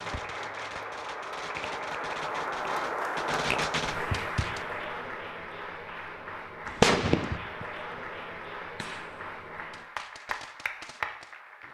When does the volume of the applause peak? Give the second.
3 s.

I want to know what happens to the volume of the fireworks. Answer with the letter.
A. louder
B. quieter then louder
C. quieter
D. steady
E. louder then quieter
E.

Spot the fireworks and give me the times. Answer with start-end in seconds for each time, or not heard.
0.0-4.7, 6.7-11.6.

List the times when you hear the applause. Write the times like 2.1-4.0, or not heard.
0.0-11.6.